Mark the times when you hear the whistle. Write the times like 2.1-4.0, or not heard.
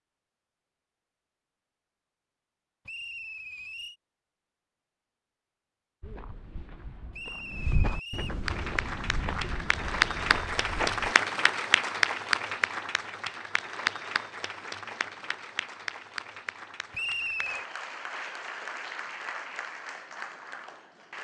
2.9-4.0, 7.1-8.4, 16.9-17.6.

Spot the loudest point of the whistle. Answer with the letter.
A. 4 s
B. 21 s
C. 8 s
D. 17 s
D.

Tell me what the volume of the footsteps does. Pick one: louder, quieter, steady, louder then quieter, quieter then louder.
louder then quieter.